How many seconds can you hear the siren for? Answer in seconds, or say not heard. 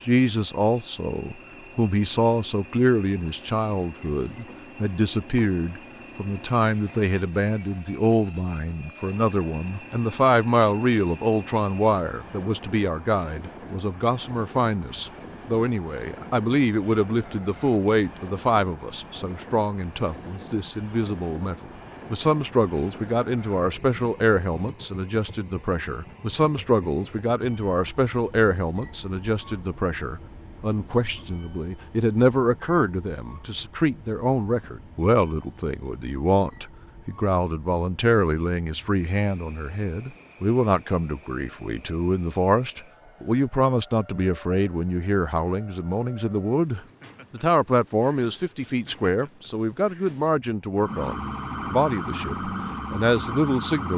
3 s.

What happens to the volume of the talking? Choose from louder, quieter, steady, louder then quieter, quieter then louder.
steady.